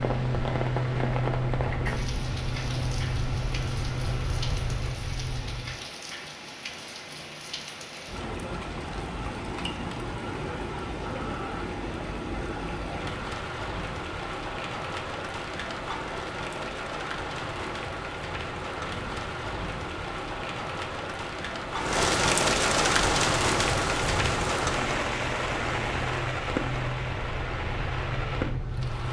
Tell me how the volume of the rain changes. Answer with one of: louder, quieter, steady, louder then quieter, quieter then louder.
louder.